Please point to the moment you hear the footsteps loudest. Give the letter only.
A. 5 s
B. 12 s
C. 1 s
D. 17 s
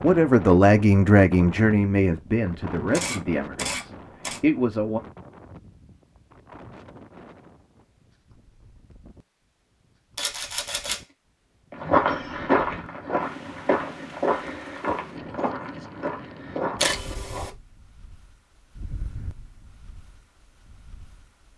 B.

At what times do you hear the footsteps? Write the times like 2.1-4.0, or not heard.
11.7-16.9.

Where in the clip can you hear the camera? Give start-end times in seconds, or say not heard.
2.9-4.4, 10.2-11.0, 16.8-17.5.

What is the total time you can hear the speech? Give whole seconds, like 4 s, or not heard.
5 s.